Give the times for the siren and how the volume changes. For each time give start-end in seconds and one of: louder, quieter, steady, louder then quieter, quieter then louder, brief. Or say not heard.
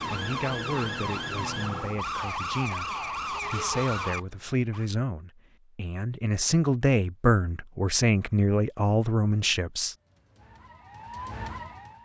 0.0-4.8 steady
9.9-11.9 brief.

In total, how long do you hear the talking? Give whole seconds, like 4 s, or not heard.
9 s.